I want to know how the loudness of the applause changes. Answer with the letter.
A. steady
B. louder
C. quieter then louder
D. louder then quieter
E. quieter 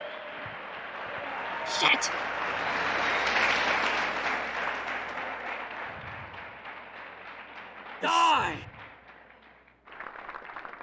D.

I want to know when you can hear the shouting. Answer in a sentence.
The shouting can be heard from 1.6 to 2.1 s and from 8.0 to 8.7 s.